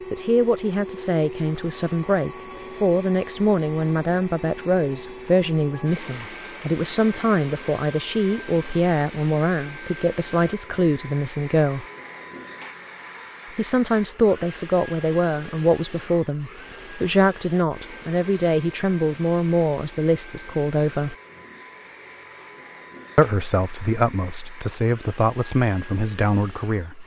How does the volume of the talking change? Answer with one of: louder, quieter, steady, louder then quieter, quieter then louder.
steady.